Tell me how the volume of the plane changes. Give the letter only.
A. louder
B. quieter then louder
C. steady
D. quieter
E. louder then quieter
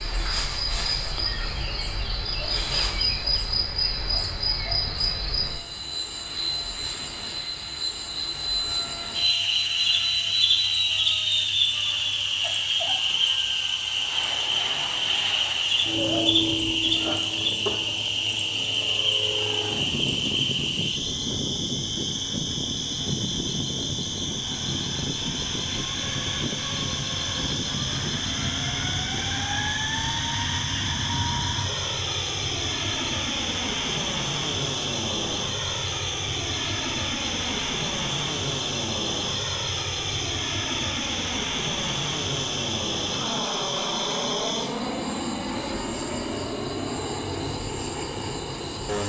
C.